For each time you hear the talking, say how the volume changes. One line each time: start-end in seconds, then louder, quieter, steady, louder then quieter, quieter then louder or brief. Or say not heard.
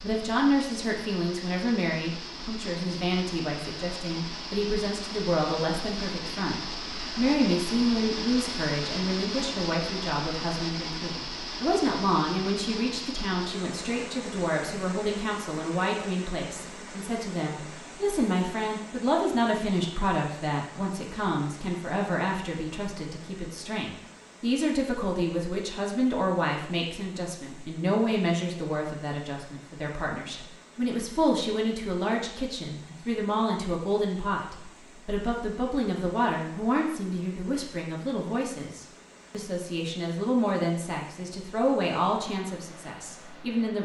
0.0-43.8 steady.